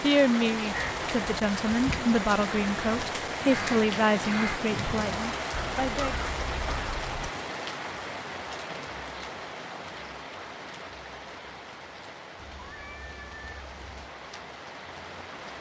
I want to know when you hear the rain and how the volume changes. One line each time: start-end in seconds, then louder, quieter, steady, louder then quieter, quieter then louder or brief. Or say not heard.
0.0-15.5 quieter.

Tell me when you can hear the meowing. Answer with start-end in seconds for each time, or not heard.
12.3-13.9.